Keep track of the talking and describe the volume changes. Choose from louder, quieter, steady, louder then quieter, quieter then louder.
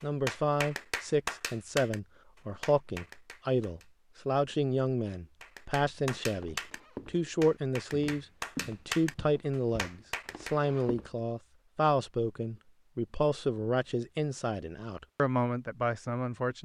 steady.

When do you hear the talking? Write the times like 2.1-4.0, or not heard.
0.0-16.5.